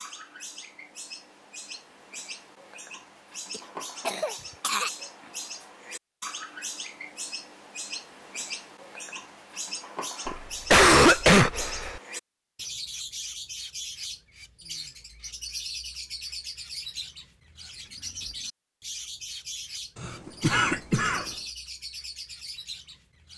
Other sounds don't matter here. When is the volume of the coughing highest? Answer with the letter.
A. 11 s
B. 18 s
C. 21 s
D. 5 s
A.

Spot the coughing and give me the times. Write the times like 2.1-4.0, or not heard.
3.5-4.9, 10.2-12.0, 19.9-21.3.